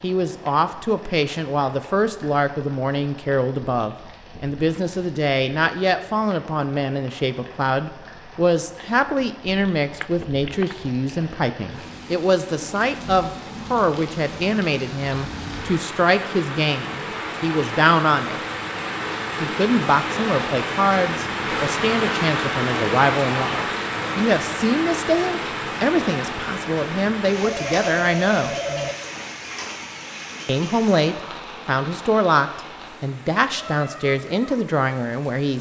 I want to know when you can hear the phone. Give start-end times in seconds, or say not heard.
10.0-10.8, 27.4-28.9.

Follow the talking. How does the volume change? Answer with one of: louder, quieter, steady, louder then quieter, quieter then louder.
steady.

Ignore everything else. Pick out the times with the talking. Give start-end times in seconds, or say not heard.
0.0-18.4, 19.4-28.6, 30.4-35.5.